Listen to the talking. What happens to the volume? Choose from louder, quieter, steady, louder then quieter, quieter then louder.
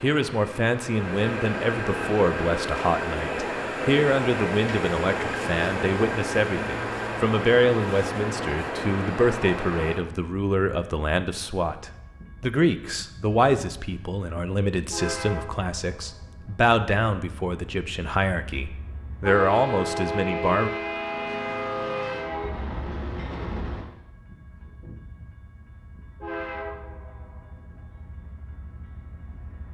steady.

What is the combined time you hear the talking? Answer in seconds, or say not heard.
21 s.